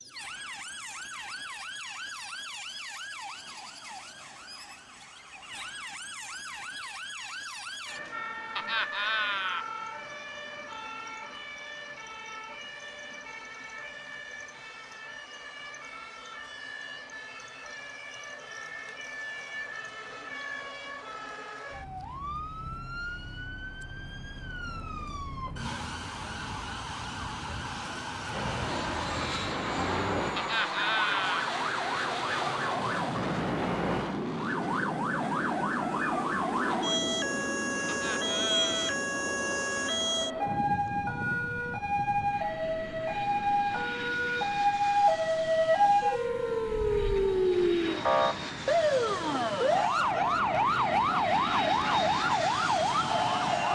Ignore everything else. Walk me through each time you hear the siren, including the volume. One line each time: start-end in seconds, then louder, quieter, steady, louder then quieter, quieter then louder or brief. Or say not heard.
0.0-53.7 louder.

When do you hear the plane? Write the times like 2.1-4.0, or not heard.
28.2-53.7.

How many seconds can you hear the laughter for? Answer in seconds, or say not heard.
3 s.